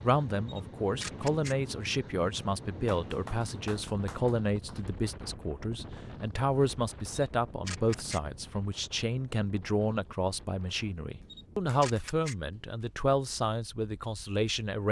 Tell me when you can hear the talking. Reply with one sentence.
The talking can be heard from 0.0 to 14.8 s.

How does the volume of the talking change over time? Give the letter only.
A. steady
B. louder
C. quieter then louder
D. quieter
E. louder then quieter
A.